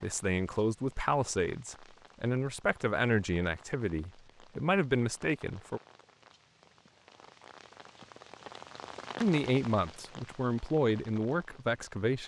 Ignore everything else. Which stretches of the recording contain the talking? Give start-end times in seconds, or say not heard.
0.0-5.8, 9.2-12.2.